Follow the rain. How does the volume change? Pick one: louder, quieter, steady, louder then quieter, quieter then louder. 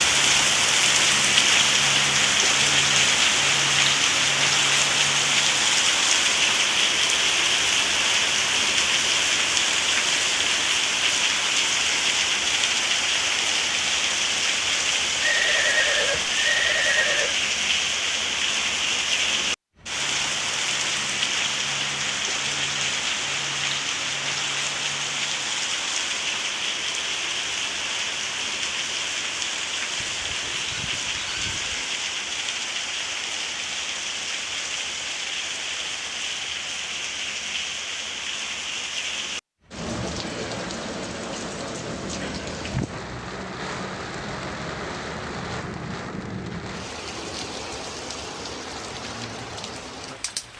quieter.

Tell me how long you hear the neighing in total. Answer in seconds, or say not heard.
4 s.